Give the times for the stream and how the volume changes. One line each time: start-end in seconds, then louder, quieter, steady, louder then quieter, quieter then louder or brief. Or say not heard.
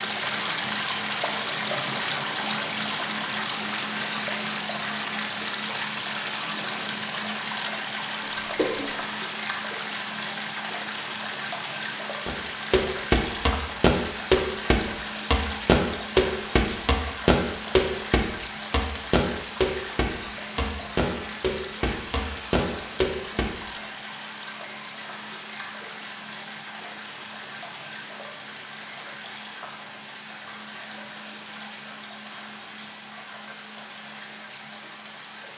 0.0-35.5 quieter.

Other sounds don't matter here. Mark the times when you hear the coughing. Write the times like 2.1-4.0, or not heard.
8.2-8.9.